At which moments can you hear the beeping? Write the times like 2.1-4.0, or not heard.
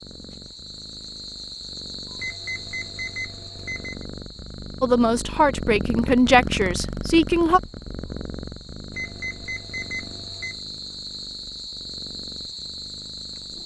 2.1-4.0, 8.9-10.6.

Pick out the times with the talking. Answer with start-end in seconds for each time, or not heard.
4.8-7.6.